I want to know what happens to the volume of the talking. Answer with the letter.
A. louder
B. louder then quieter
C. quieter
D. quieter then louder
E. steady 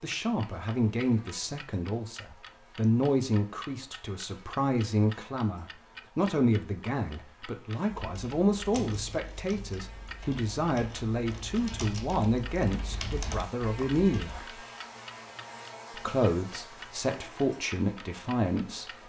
E.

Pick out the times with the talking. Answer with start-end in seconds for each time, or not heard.
0.0-14.6, 15.9-19.0.